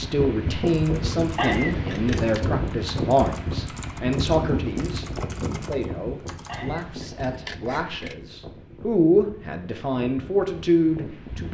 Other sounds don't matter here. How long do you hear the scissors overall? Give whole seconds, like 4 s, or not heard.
3 s.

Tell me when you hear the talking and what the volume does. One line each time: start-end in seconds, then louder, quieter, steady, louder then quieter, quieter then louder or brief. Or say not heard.
0.0-11.5 quieter then louder.